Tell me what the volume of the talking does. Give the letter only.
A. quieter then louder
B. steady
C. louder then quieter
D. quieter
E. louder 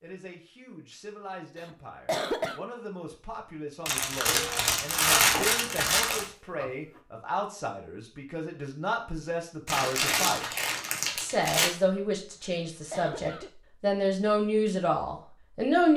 E.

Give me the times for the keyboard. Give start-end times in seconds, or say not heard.
not heard.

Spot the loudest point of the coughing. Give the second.
2 s.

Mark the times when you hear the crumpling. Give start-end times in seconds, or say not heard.
3.9-6.2, 9.7-11.7.